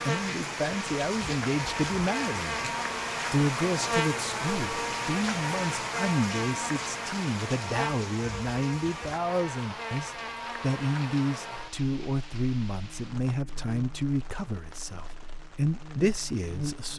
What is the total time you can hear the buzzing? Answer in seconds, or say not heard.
17 s.